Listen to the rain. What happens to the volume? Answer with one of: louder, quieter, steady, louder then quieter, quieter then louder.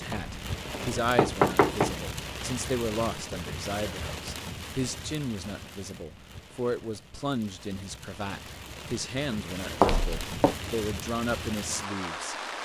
quieter then louder.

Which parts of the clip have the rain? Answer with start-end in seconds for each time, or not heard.
0.0-12.5.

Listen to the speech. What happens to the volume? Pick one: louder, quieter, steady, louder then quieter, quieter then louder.
steady.